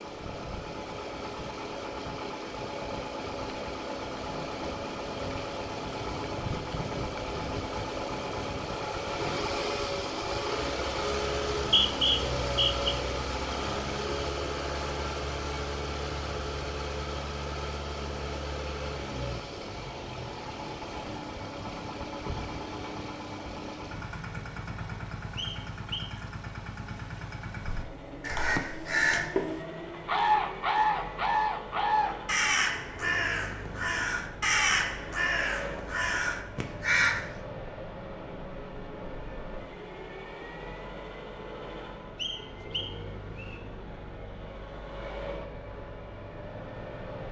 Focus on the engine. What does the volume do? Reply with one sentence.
The volume of the engine goes down.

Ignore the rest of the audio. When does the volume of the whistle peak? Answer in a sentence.
The loudest moment of the whistle is at 12 seconds.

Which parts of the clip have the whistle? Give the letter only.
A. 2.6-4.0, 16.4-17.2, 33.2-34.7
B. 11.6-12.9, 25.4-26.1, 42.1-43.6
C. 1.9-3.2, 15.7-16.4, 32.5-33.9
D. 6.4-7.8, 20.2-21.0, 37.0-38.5
B.